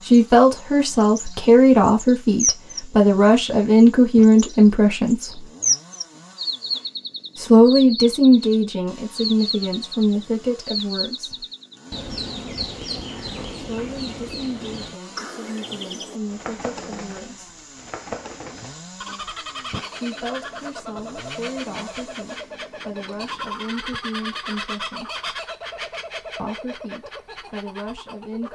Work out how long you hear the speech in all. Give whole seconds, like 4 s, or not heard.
21 s.